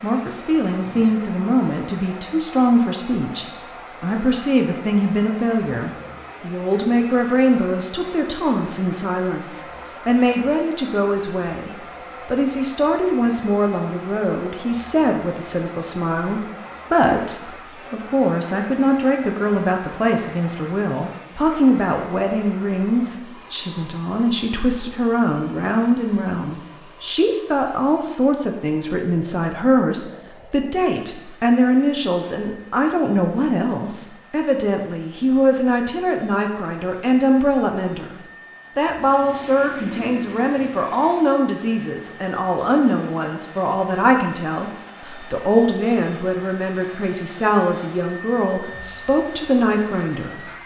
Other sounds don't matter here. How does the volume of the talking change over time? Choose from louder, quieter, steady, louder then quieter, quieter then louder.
steady.